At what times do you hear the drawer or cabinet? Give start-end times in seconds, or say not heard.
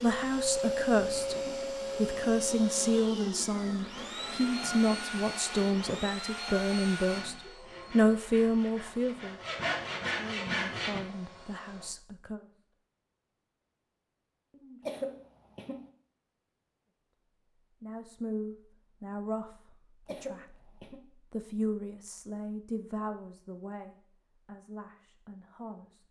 not heard.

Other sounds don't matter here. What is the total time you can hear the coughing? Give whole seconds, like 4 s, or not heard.
3 s.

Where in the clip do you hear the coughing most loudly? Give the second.
15 s.